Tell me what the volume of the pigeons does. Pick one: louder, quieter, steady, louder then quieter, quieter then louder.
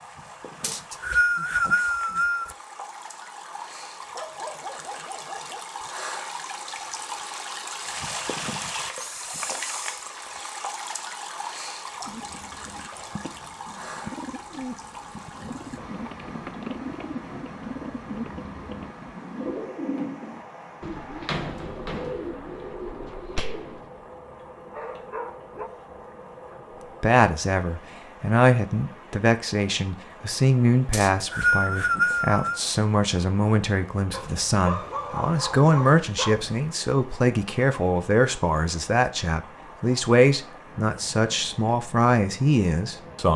louder.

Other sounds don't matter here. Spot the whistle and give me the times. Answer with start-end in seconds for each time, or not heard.
0.6-2.5, 30.9-32.6.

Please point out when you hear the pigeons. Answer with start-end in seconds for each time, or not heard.
12.0-23.9.